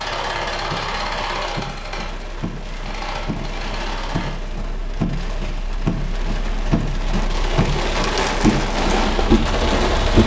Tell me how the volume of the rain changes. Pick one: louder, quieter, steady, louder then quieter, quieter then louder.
louder.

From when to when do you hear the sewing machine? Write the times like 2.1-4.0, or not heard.
0.0-4.3.